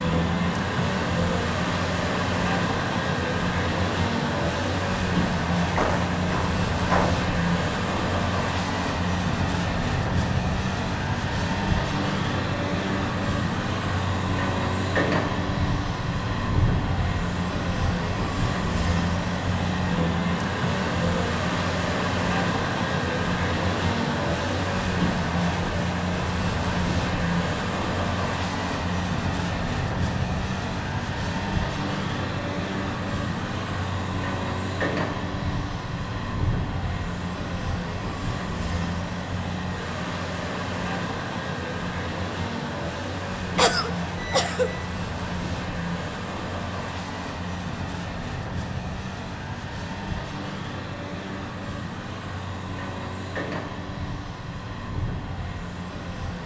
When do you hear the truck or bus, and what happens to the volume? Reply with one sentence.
You can hear the truck or bus from 0.0 to 56.4 s, getting quieter.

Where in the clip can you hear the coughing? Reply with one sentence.
You can hear the coughing from 5.8 to 7.2 s and from 43.5 to 44.7 s.